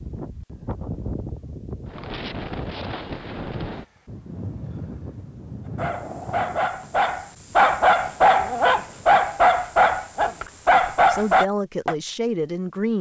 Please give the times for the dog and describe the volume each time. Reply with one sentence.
You can hear the dog from 5.7 to 11.9 s, getting louder.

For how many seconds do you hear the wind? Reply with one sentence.
The wind can be heard for 9 seconds in total.